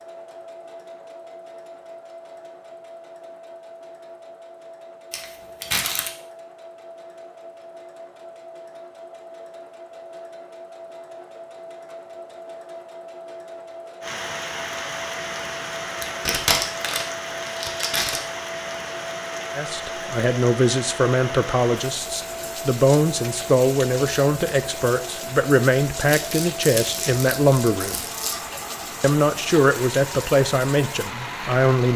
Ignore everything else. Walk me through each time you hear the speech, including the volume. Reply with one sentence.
The speech can be heard from 19.6 to 28.0 s, at a steady volume; and briefly from 29.0 to 31.9 s.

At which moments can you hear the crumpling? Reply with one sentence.
You can hear the crumpling from 5.1 to 6.1 s, from 15.8 to 18.2 s and from 26.1 to 28.4 s.